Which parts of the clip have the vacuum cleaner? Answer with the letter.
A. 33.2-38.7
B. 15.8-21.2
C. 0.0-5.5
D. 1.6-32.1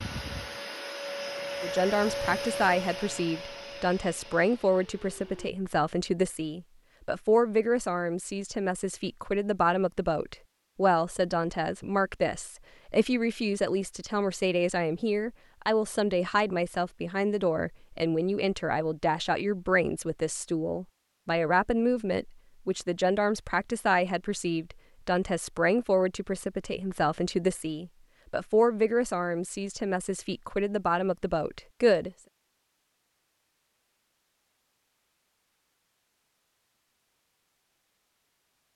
C.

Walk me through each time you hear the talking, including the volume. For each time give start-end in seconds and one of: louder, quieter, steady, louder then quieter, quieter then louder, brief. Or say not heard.
1.6-32.1 steady.